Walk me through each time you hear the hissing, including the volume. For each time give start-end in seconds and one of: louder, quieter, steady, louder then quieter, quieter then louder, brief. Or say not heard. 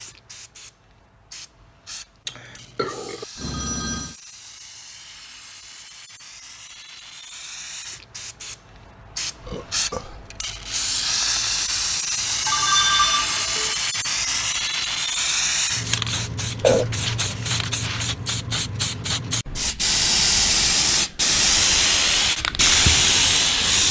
0.0-23.8 louder.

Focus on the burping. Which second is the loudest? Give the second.
17 s.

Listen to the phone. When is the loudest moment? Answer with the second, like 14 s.
13 s.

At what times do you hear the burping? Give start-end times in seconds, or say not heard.
2.2-3.2, 9.4-10.2, 16.6-17.1.